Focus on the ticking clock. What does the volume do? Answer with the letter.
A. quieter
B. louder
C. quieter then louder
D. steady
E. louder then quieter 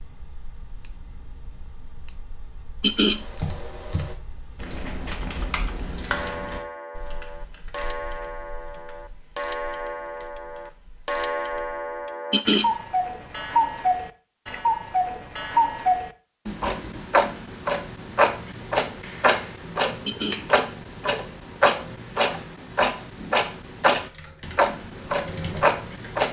B.